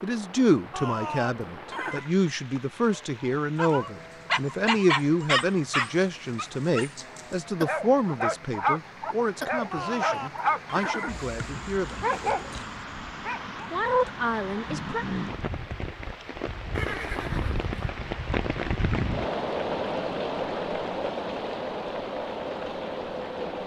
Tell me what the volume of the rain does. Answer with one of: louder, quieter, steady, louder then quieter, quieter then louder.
louder.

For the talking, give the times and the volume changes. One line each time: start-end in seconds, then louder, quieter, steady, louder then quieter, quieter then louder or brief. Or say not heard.
0.0-12.1 quieter
13.7-15.1 brief.